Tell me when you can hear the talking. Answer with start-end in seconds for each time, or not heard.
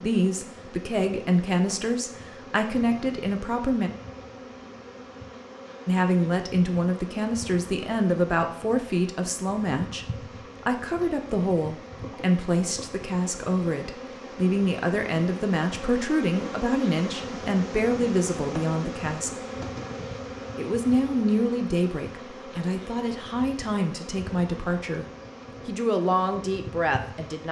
0.0-3.9, 5.8-19.3, 20.6-25.1, 25.6-27.4.